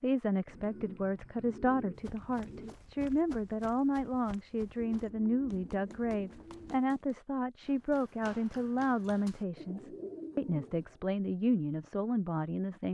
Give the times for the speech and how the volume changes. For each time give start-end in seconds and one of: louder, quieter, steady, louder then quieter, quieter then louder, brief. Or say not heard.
0.0-12.8 steady.